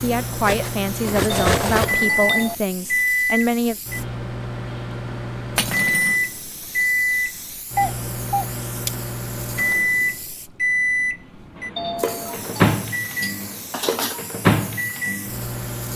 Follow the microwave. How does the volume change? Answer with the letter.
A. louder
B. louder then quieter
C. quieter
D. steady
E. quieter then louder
D.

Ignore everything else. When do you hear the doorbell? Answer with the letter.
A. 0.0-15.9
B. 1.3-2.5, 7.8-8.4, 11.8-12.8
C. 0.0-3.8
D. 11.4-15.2
B.